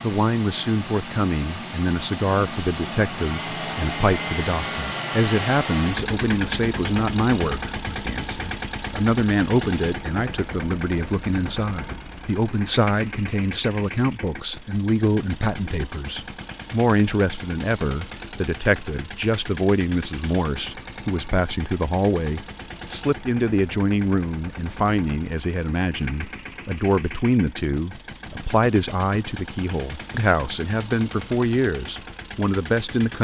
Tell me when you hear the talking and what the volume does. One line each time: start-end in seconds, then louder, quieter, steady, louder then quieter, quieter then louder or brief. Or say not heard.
0.0-33.1 steady.